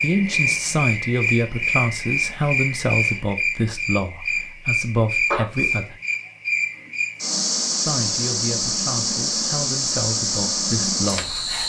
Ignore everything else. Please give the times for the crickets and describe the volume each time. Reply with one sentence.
The crickets can be heard from 0.0 to 11.6 s, at a steady volume.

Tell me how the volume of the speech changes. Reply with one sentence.
The volume of the speech goes down.